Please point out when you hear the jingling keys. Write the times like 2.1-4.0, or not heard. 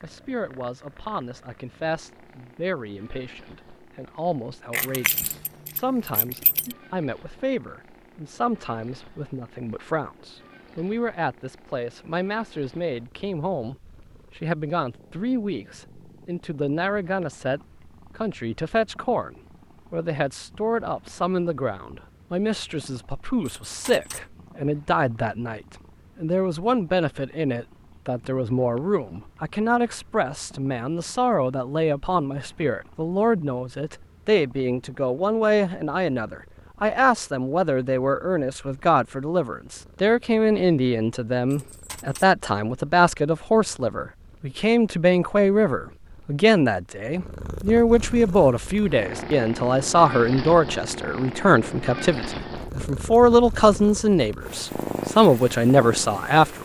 4.7-6.8, 23.4-24.2, 41.5-42.3.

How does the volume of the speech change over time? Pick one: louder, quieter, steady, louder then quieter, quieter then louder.
louder.